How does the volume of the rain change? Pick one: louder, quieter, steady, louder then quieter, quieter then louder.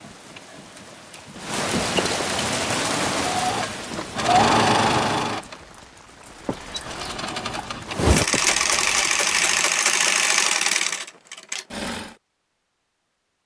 quieter.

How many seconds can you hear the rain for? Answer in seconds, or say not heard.
10 s.